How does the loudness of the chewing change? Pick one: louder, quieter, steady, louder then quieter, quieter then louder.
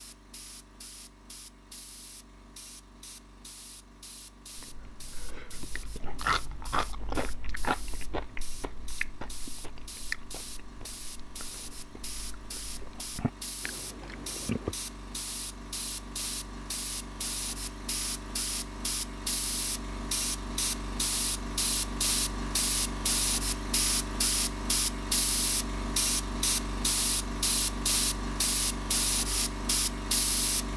quieter then louder.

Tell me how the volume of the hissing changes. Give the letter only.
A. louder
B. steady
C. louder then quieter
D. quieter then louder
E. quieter
A.